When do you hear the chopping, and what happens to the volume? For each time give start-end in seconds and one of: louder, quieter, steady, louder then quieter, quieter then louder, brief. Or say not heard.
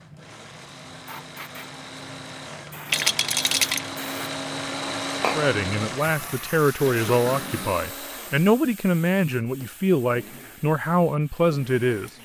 not heard.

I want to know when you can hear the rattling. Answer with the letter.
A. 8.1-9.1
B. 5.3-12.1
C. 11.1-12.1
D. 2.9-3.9
D.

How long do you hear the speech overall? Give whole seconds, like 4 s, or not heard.
7 s.